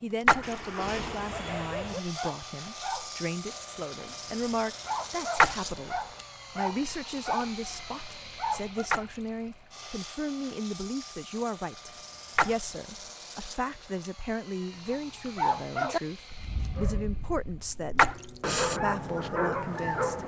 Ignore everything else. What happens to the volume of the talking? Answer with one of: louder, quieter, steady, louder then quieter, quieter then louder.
steady.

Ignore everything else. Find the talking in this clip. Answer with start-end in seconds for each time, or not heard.
0.0-6.0, 6.5-20.2.